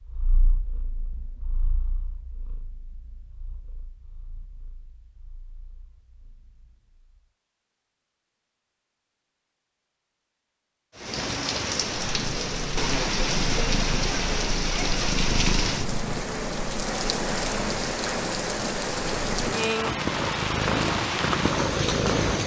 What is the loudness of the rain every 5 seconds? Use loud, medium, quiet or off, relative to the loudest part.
off, off, loud, loud, loud.